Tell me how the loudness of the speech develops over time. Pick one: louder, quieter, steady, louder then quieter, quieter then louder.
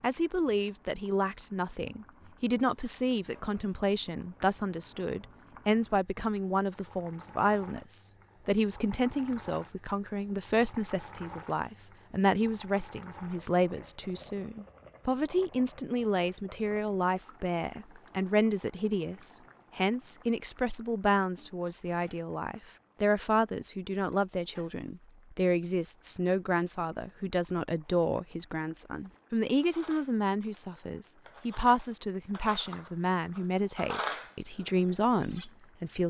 steady.